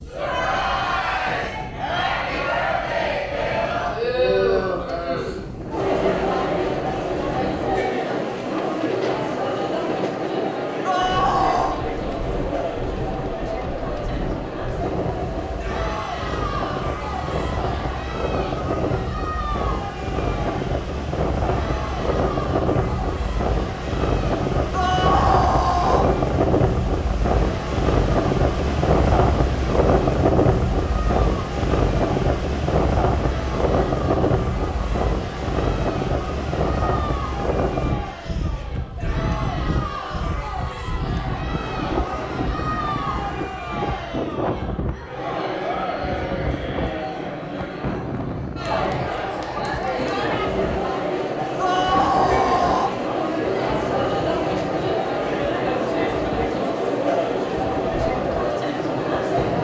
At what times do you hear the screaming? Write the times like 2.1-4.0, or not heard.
10.8-11.8, 24.7-26.1, 51.5-53.0.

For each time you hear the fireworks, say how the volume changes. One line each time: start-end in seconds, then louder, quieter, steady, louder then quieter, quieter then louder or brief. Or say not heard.
not heard.